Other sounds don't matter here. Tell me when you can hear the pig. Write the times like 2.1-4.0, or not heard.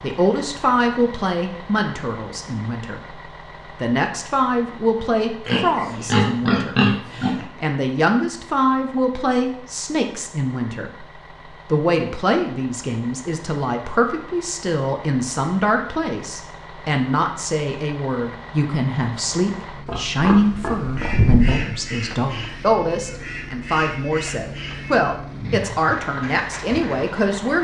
5.5-7.5, 19.9-21.6.